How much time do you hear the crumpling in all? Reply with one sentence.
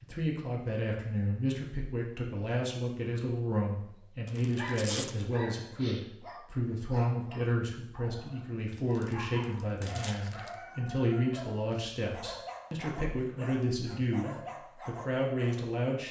You can hear the crumpling for 3 seconds altogether.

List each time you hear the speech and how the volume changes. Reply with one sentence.
The speech can be heard from 0.0 to 16.0 s, at a steady volume.